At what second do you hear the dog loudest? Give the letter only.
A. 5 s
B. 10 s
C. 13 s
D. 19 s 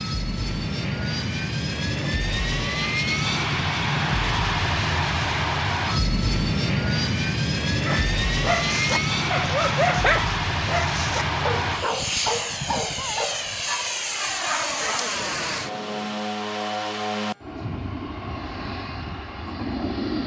B.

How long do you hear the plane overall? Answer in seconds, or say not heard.
20 s.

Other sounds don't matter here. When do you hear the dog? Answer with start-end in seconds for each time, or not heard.
7.8-15.1.